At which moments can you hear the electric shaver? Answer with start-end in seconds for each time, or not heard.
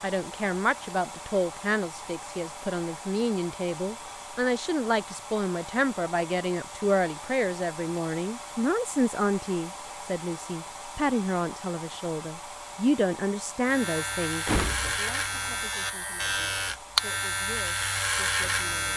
13.6-18.9.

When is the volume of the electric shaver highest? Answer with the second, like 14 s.
17 s.